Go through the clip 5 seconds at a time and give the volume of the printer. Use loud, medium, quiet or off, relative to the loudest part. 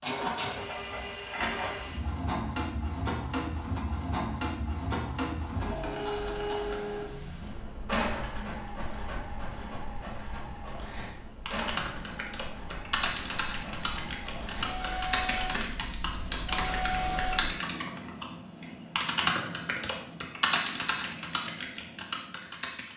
loud, loud, medium, loud, off.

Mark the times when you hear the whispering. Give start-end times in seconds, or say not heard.
not heard.